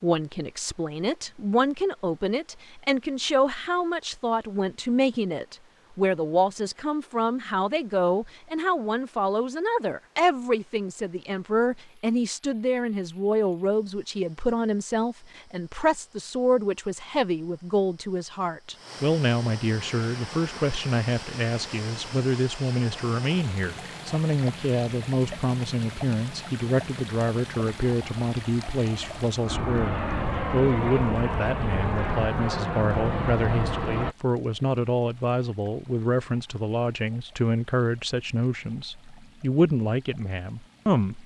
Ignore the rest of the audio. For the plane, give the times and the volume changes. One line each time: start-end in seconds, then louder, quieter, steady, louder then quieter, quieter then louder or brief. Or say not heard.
19.8-34.1 louder.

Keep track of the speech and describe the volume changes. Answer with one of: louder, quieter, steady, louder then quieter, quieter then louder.
steady.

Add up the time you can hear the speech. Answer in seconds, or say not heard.
41 s.